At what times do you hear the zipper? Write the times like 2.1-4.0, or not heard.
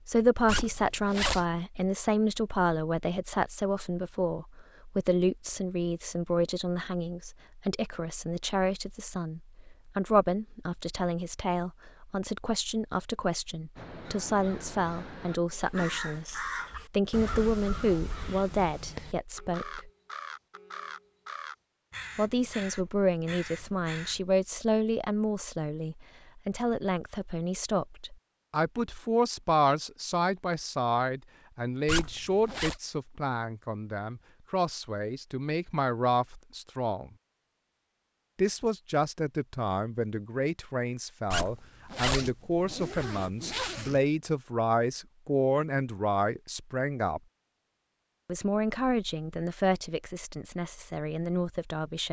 0.5-1.4, 31.9-32.8, 41.3-44.0.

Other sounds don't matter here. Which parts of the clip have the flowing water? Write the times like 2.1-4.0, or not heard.
not heard.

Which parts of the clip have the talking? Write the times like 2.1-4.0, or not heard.
0.1-19.9, 22.1-37.1, 38.4-47.2, 48.2-52.0.